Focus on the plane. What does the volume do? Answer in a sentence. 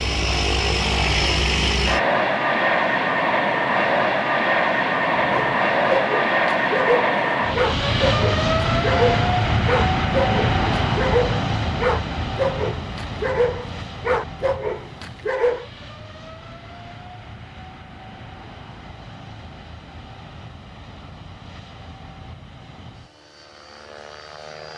The loudness of the plane goes down.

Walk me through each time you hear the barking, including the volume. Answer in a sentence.
The barking can be heard from 5.2 to 15.7 s, at a steady volume.